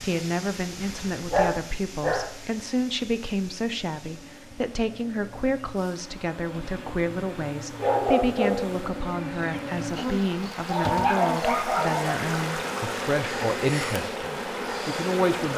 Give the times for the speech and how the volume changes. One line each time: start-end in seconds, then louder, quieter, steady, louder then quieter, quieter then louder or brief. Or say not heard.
0.0-15.5 steady.